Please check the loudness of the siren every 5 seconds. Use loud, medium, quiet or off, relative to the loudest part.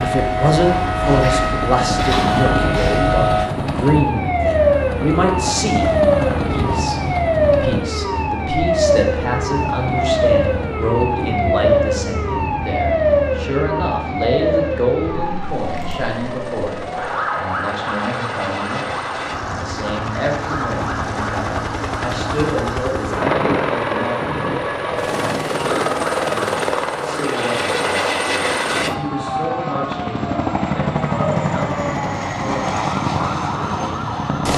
loud, loud, loud, medium, medium, medium, medium.